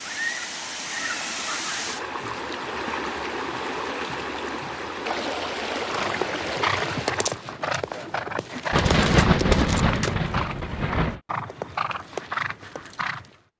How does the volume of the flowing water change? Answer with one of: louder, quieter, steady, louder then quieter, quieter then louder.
steady.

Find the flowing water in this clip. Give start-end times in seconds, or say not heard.
0.0-7.5.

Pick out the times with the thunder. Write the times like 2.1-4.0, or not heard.
8.7-11.2.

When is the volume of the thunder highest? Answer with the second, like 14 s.
9 s.